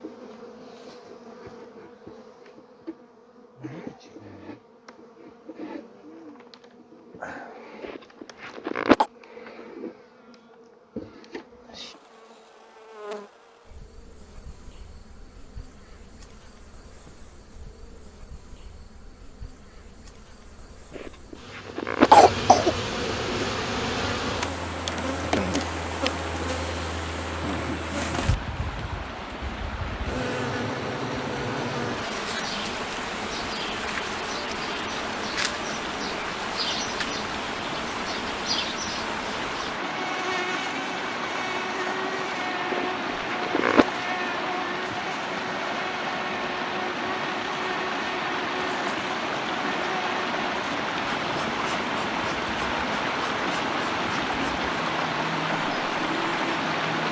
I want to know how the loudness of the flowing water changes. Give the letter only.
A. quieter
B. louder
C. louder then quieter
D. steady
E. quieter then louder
B.